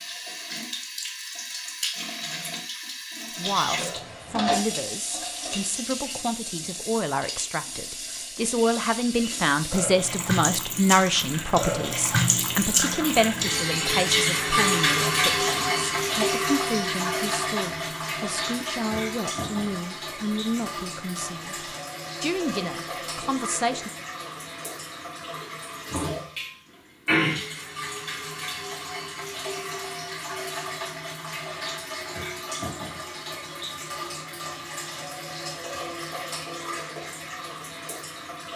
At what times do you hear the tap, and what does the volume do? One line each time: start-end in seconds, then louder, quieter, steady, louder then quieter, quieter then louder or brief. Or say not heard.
0.0-38.5 louder then quieter.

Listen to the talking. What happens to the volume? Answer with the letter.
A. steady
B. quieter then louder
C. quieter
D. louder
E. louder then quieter
E.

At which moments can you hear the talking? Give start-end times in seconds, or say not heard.
3.4-23.9.